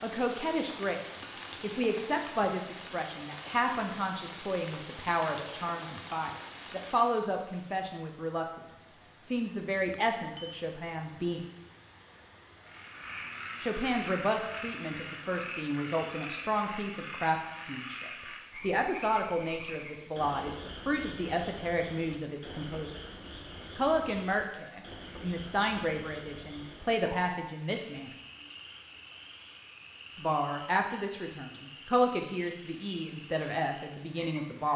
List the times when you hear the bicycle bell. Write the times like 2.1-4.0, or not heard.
9.8-10.6.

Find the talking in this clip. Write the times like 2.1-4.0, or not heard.
0.0-11.4, 13.6-22.9, 23.8-28.1, 30.1-34.7.